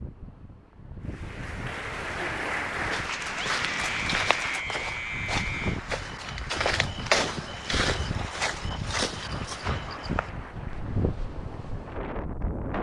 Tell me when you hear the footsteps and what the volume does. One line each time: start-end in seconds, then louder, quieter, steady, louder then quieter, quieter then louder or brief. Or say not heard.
2.8-11.8 louder then quieter.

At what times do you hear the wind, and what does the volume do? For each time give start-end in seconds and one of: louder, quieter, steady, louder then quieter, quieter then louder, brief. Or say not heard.
0.0-12.7 louder.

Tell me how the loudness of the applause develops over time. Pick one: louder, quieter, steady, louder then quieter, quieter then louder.
quieter.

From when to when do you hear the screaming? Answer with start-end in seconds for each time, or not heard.
3.3-5.8.